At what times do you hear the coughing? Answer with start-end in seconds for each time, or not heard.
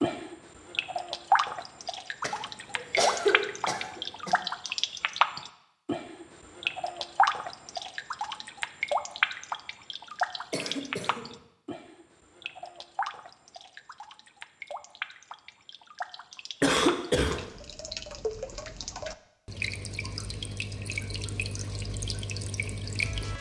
2.2-4.3, 10.5-11.4, 16.6-17.4.